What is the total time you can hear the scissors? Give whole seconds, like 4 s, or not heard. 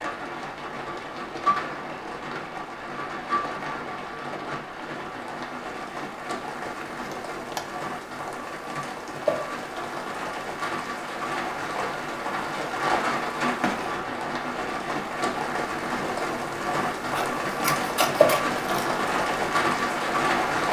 3 s.